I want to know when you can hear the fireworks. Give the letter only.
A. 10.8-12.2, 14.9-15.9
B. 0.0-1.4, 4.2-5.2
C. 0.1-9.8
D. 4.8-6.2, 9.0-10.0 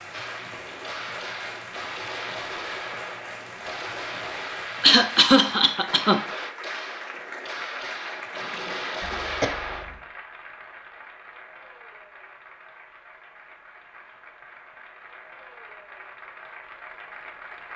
C.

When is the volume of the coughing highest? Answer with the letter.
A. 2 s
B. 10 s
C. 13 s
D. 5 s
D.